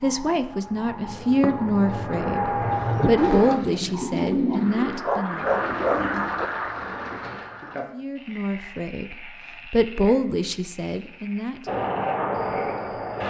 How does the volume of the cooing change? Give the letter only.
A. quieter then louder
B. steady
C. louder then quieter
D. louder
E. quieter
C.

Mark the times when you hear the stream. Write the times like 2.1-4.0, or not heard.
not heard.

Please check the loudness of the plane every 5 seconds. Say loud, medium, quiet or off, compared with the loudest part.
loud, off, loud.